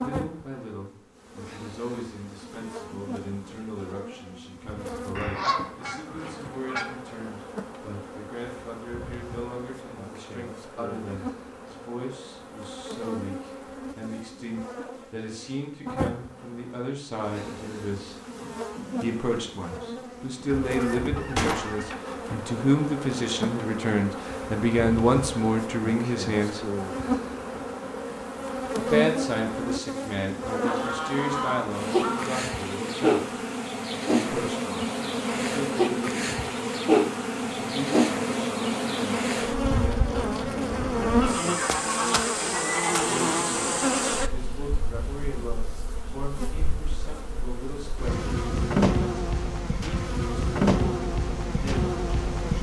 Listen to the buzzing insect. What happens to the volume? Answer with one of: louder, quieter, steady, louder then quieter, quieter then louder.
louder.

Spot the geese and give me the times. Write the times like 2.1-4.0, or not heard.
5.2-6.8, 20.5-21.9, 30.6-32.4, 41.2-43.1.